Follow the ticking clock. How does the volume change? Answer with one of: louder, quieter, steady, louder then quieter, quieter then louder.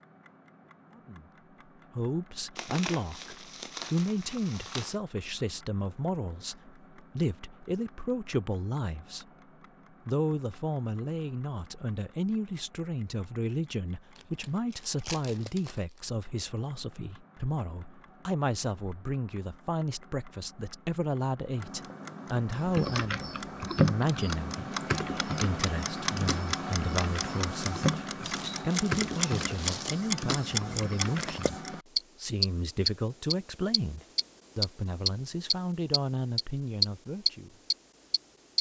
louder.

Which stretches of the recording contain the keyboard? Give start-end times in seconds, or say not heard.
22.6-31.4.